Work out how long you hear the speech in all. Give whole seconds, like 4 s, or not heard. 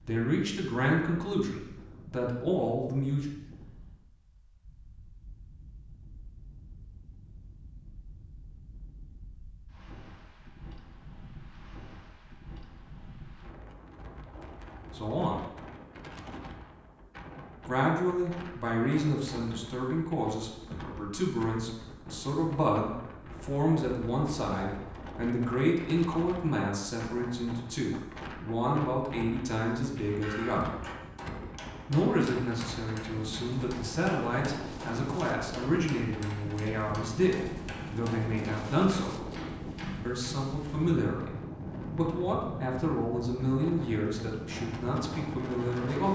30 s.